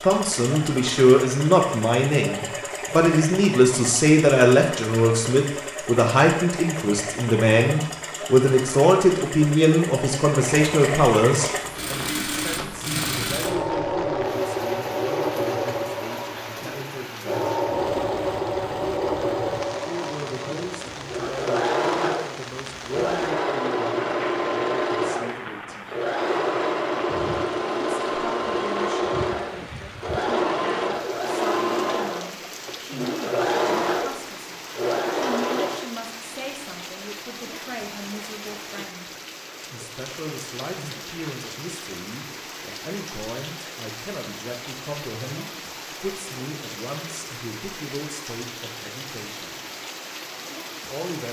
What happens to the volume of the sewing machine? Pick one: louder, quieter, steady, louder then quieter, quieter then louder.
louder.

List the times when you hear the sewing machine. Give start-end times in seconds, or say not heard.
0.0-35.9.